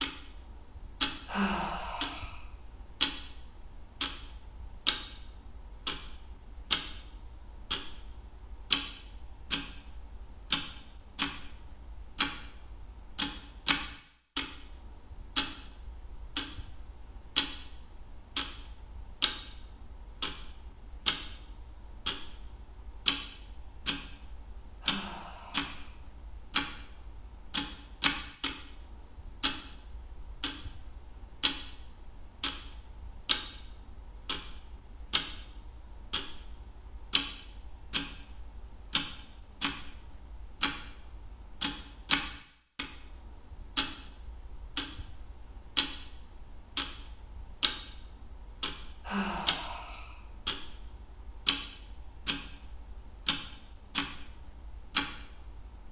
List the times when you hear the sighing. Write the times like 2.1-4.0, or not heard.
1.2-2.4, 24.8-25.9, 49.0-50.1.